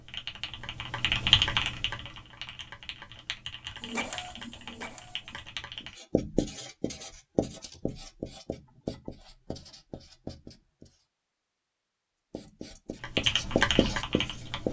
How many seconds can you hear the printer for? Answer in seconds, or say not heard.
2 s.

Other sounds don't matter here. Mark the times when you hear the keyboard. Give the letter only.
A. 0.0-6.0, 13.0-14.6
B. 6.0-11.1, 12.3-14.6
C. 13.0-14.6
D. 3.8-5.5
A.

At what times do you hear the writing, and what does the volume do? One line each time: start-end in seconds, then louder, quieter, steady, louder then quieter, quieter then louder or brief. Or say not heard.
6.0-11.1 quieter
12.3-14.6 brief.